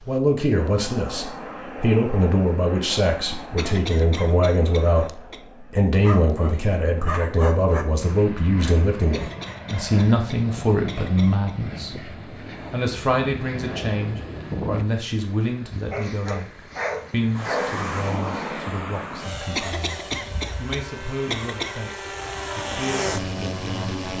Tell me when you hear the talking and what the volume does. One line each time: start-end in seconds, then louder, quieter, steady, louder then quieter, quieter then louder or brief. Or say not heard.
0.1-12.1 steady
12.7-23.9 quieter.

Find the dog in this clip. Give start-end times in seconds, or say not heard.
6.0-7.8, 15.7-17.7.